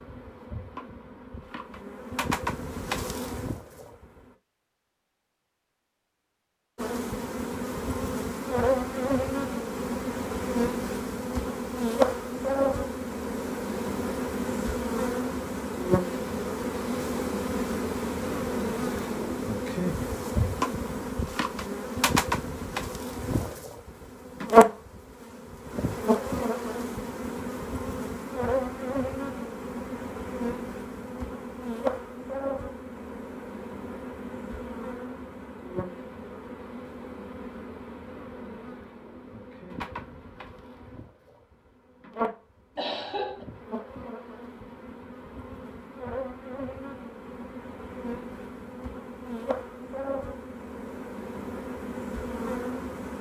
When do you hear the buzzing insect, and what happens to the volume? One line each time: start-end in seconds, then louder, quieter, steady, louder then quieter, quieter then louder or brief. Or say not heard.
0.0-4.3 louder then quieter
6.8-53.1 quieter.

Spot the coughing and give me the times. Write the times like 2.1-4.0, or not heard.
42.8-43.5.